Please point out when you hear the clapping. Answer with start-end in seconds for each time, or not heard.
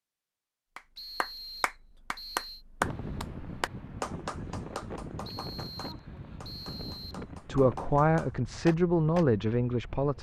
0.8-9.2.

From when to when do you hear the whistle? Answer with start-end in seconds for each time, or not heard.
0.9-2.6, 5.2-7.2.